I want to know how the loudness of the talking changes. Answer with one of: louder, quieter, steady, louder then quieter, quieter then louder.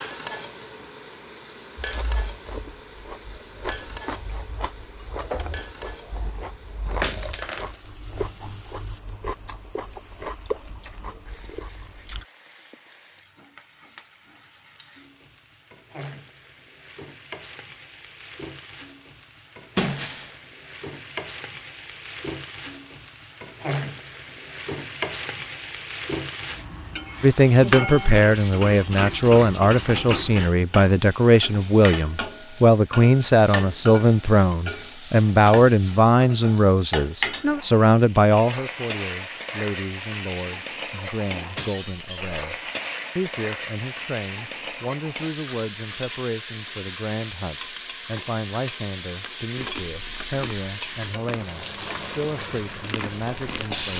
quieter.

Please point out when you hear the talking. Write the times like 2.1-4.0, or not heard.
27.2-42.5, 43.1-53.9.